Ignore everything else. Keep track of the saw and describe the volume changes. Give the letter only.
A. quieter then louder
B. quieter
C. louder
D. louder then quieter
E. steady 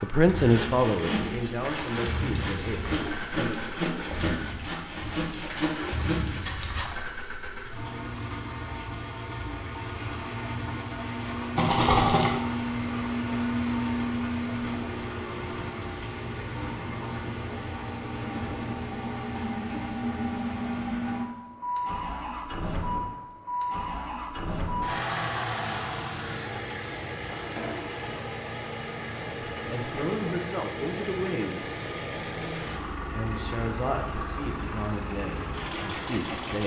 E.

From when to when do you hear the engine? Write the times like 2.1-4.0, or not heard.
0.0-36.6.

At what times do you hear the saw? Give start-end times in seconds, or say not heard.
0.3-6.9.